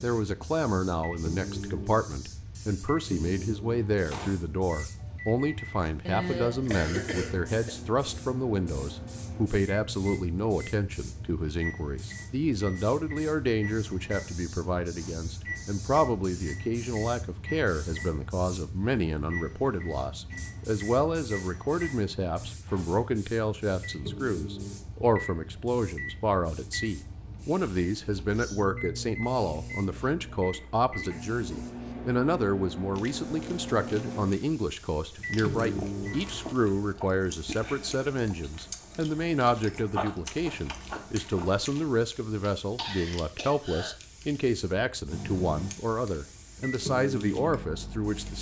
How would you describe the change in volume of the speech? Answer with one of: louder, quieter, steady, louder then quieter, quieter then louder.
steady.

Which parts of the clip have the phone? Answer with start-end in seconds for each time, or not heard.
not heard.